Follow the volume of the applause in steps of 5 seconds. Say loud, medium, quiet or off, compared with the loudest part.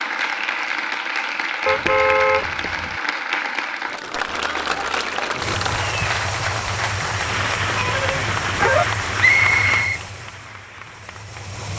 loud, loud, quiet.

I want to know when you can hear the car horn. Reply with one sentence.
You can hear the car horn from 1.6 to 3.0 s and from 7.8 to 8.8 s.